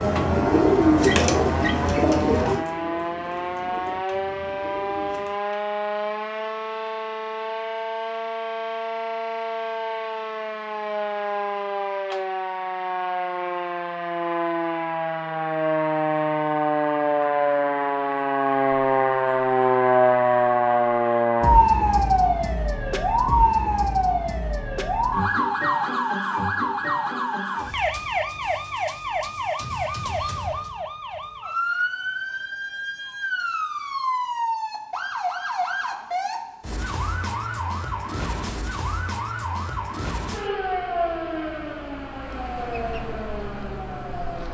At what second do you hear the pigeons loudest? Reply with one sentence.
The volume of the pigeons peaks at 1 second.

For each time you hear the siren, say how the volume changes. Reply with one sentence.
The siren can be heard from 0.0 to 44.5 s, getting louder then quieter.